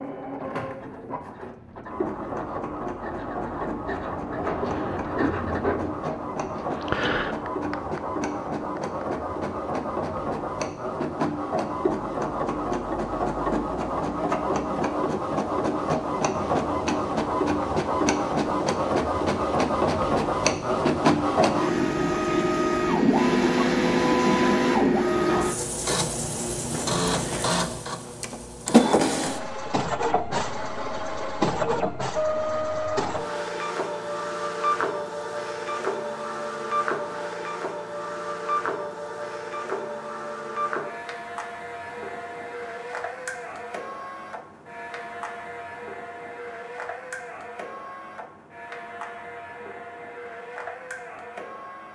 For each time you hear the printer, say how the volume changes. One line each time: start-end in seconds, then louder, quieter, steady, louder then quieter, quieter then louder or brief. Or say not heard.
0.0-51.9 louder then quieter.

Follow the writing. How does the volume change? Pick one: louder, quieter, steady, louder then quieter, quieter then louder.
louder.